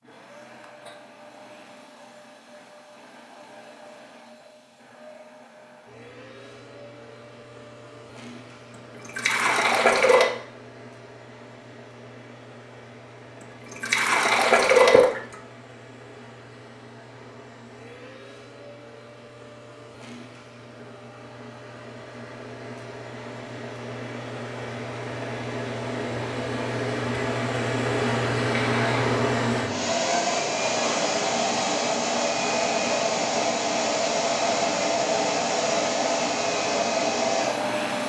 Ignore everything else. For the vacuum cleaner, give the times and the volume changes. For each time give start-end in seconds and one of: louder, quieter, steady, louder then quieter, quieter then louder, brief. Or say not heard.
0.0-38.0 louder.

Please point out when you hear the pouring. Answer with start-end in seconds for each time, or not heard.
9.0-10.3, 13.7-15.3, 28.6-29.1.